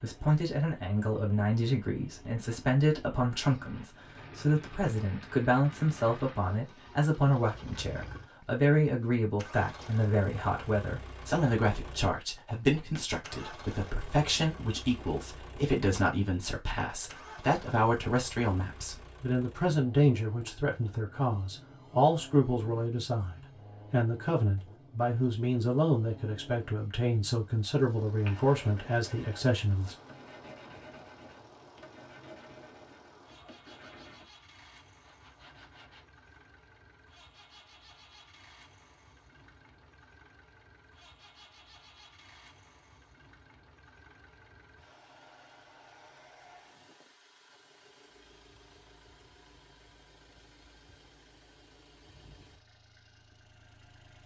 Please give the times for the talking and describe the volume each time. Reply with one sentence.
The talking can be heard from 0.0 to 29.9 s, at a steady volume.